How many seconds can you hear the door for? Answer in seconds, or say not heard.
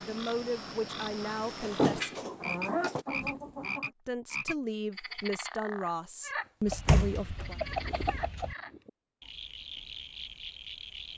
3 s.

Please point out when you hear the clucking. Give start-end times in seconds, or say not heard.
2.1-3.9, 6.7-8.6.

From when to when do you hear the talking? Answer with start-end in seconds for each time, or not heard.
0.0-2.1, 3.9-7.6.